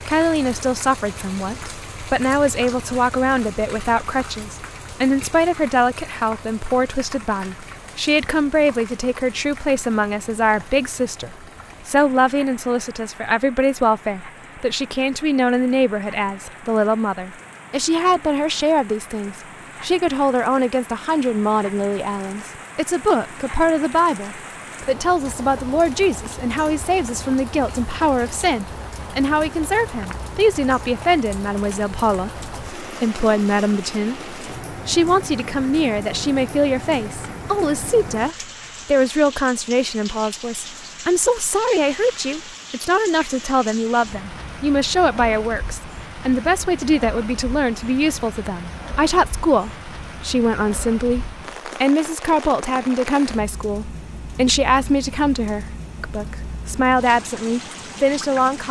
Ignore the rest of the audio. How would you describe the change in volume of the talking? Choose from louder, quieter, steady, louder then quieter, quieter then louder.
steady.